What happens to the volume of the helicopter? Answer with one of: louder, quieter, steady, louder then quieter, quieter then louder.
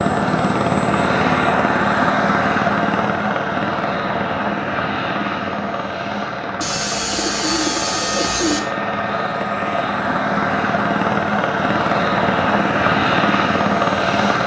quieter then louder.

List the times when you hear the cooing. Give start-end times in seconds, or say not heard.
6.6-8.6.